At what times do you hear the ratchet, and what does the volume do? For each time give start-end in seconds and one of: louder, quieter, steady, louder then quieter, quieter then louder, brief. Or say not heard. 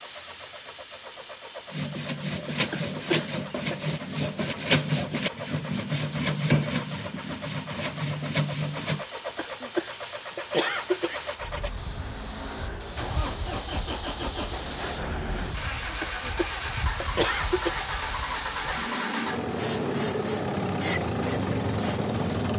not heard.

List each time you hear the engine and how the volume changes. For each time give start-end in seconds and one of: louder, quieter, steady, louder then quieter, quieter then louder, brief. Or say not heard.
0.0-22.5 louder.